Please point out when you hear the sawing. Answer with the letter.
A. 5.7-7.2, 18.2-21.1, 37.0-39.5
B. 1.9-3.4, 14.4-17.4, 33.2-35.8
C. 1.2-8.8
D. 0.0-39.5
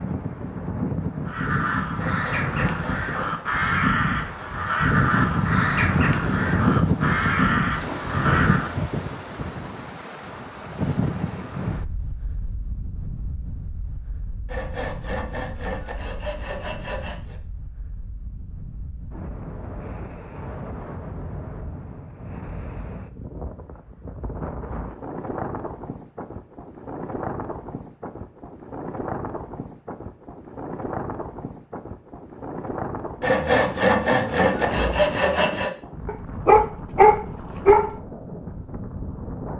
B.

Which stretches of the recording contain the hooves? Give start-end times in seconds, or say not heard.
not heard.